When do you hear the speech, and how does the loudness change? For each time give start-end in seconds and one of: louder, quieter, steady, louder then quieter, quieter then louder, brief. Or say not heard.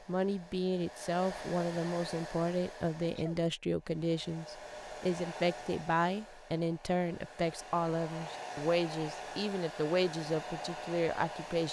0.1-11.6 steady.